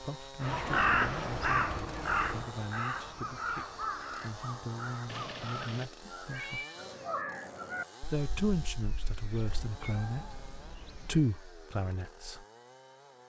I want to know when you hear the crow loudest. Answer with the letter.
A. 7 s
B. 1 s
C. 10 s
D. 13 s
B.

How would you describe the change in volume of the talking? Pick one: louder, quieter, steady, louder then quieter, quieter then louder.
louder.